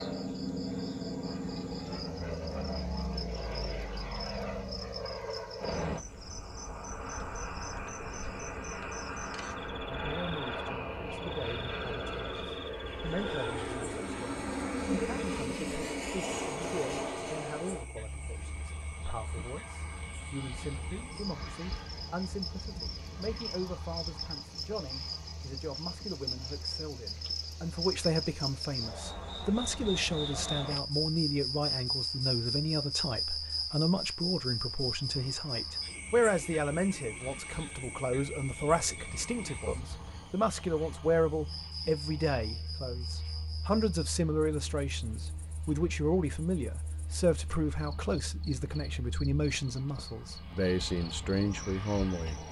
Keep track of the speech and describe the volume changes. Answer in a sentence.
The volume of the speech goes up.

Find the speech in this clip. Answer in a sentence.
You can hear the speech from 9.8 to 52.4 s.